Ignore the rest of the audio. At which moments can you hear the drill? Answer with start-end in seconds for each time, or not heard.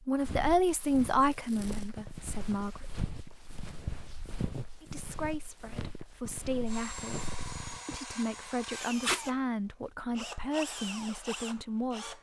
6.7-12.1.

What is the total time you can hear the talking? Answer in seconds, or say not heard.
10 s.